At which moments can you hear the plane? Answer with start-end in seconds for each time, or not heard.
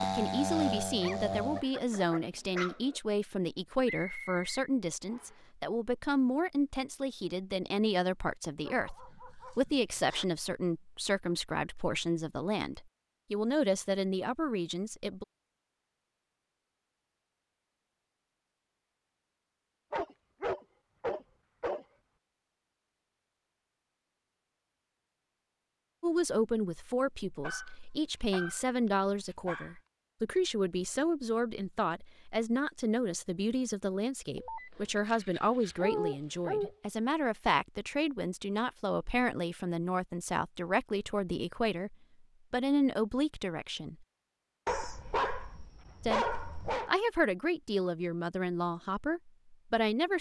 0.0-1.6.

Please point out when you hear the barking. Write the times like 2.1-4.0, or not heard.
1.0-3.0, 8.7-10.2, 19.9-21.9, 27.4-29.8, 34.4-36.8, 44.6-46.9.